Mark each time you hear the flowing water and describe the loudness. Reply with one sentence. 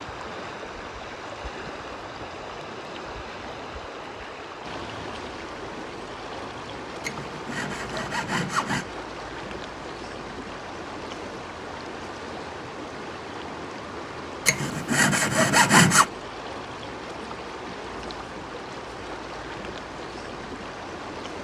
You can hear the flowing water from 0.0 to 21.3 s, at a steady volume.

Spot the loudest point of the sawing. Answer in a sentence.
The volume of the sawing peaks at 16 seconds.